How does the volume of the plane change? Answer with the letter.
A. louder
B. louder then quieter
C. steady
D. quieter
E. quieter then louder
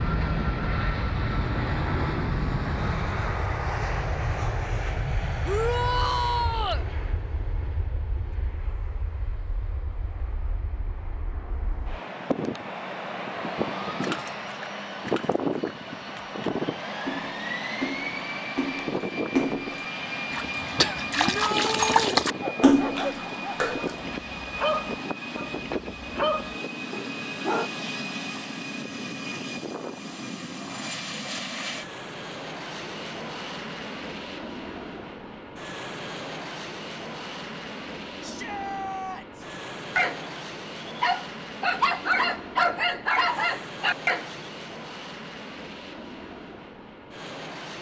D.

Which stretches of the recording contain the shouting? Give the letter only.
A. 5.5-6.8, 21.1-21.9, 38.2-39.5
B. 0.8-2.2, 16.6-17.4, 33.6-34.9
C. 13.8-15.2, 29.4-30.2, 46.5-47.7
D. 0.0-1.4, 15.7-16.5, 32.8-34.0
A.